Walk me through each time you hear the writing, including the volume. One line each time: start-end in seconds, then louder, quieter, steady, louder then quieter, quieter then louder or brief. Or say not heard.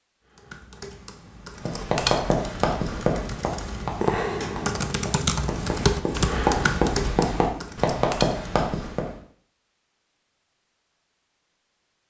1.6-9.2 quieter then louder.